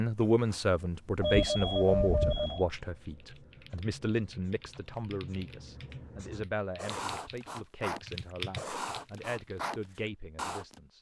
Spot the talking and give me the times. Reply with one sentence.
The talking can be heard from 0.0 to 10.9 s.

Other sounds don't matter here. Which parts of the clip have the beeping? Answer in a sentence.
You can hear the beeping from 1.2 to 2.6 s.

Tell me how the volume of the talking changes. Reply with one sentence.
The volume of the talking goes down.